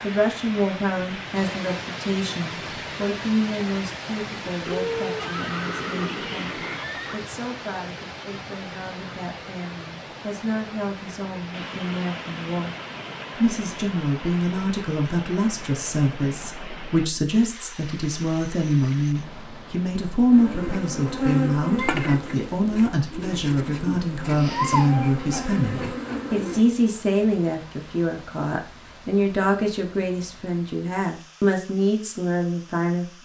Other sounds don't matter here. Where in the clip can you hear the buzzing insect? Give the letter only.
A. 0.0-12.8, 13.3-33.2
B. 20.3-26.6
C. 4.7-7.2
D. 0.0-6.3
B.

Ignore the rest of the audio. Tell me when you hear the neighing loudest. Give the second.
5 s.